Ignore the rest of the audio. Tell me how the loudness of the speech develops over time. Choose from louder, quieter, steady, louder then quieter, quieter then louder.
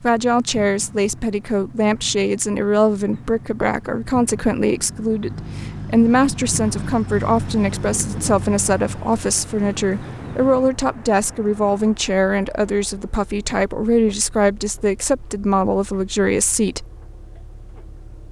steady.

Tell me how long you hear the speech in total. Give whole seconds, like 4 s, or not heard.
17 s.